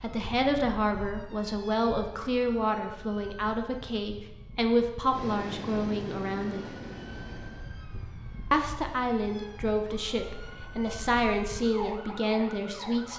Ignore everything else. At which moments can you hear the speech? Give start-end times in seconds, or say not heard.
0.0-6.8, 8.5-13.1.